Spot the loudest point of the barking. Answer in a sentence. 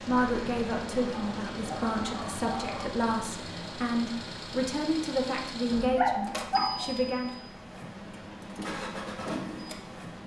The loudest moment of the barking is at 6 seconds.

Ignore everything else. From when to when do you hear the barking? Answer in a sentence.
The barking can be heard from 1.0 to 3.0 s and from 5.7 to 7.0 s.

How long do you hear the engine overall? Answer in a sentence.
The engine can be heard for 10 seconds in total.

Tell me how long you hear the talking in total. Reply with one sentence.
The talking can be heard for 7 seconds in total.